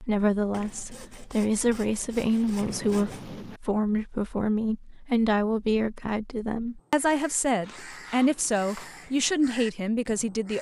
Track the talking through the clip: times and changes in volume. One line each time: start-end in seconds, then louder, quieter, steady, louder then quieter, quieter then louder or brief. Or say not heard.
0.0-10.5 steady.